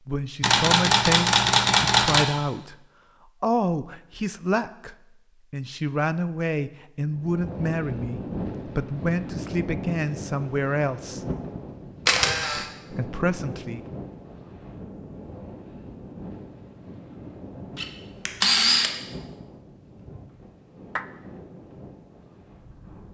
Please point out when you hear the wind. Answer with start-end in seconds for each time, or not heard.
7.1-23.0.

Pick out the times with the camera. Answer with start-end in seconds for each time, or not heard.
0.4-2.2, 12.1-12.7, 17.8-18.9.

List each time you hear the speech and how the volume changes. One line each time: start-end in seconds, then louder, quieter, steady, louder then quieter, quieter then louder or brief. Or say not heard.
0.1-2.8 brief
3.4-11.2 steady
12.9-13.8 brief.